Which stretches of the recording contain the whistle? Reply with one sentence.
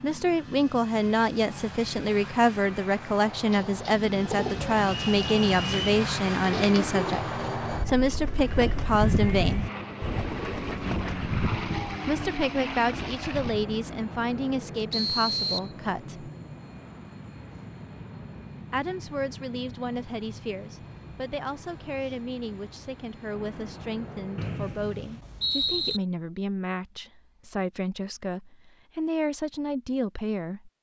The whistle can be heard from 5.1 to 5.8 s, from 14.9 to 15.7 s and from 24.4 to 26.0 s.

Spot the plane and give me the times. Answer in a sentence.
You can hear the plane from 0.0 to 24.6 s.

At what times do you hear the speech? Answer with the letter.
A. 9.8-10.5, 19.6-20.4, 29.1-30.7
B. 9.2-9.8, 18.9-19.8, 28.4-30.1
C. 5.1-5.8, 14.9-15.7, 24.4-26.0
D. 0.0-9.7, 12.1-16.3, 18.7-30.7
D.